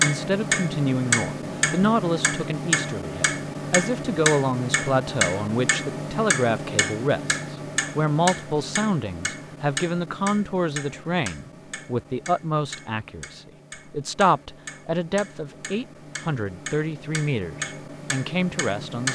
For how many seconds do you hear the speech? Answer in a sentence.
You can hear the speech for 19 seconds altogether.